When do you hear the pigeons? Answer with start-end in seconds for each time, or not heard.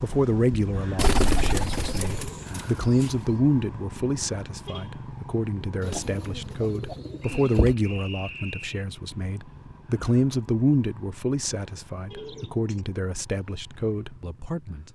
0.9-3.1, 5.8-7.8, 12.1-12.8.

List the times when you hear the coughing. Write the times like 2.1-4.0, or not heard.
not heard.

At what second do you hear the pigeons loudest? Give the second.
1 s.